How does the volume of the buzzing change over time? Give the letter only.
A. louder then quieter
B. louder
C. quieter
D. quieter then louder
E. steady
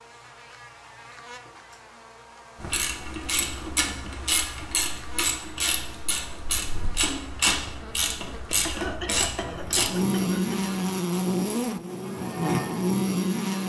B.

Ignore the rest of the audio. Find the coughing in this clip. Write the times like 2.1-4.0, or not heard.
8.6-10.8.